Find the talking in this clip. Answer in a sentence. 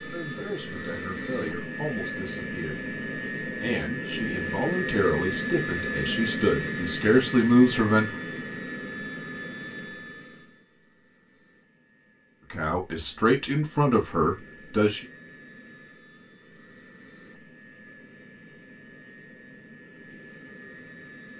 The talking can be heard from 0.1 to 8.2 s and from 12.5 to 15.1 s.